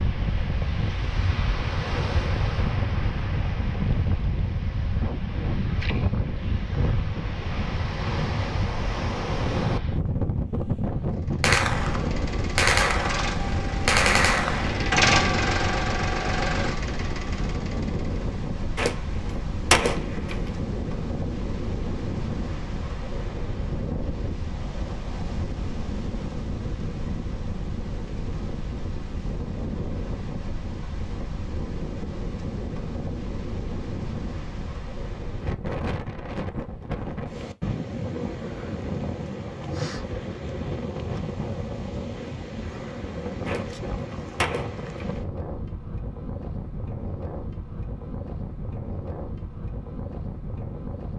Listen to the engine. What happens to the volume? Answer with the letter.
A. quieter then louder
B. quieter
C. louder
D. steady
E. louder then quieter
E.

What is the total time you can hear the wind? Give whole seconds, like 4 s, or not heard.
51 s.